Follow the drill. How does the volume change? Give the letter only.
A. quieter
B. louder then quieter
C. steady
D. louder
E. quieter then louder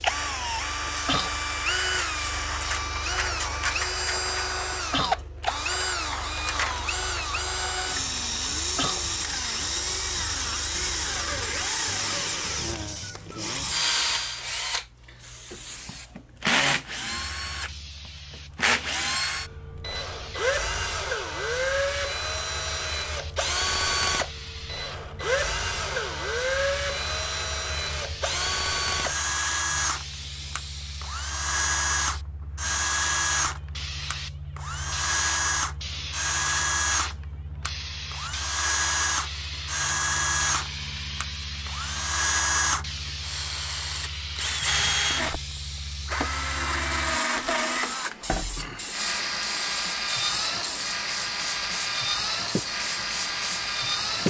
C.